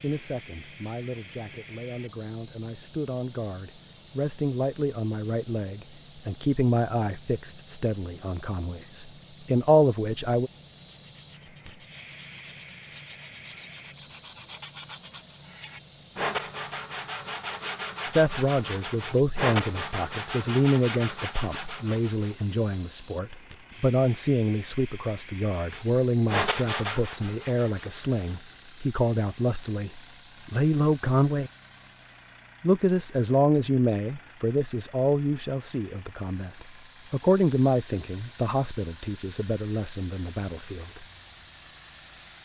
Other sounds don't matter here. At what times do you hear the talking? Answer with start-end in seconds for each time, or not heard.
0.0-10.5, 18.1-31.5, 32.6-41.0.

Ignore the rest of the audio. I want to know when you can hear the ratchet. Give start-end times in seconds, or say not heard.
not heard.